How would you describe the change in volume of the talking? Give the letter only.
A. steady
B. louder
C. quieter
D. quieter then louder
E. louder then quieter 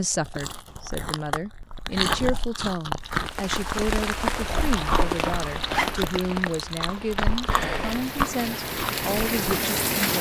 A.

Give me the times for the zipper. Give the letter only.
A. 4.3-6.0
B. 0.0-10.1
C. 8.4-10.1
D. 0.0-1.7
A.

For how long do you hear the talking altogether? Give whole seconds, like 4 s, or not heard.
10 s.